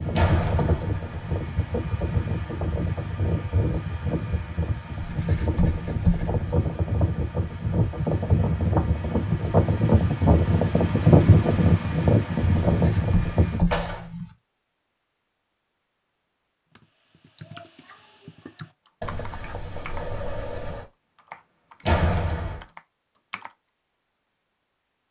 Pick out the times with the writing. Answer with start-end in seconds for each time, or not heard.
5.0-6.7, 12.6-14.2, 19.0-20.9.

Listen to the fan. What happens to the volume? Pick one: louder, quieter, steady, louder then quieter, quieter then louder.
louder.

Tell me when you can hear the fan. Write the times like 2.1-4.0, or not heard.
0.0-13.7.